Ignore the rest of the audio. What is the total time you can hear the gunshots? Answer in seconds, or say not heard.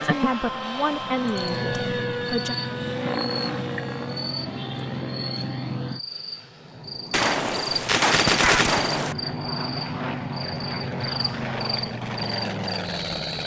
2 s.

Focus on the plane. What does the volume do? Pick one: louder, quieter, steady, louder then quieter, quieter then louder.
quieter then louder.